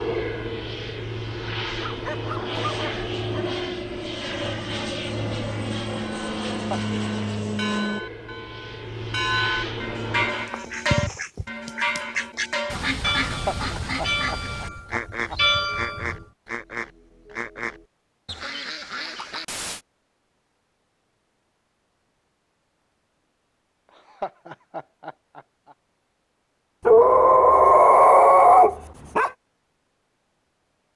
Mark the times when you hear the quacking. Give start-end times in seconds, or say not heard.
10.4-19.8.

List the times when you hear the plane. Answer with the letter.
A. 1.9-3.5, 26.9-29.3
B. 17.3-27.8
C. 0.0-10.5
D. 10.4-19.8
C.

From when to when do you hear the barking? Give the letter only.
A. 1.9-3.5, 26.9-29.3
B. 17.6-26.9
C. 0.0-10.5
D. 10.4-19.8
A.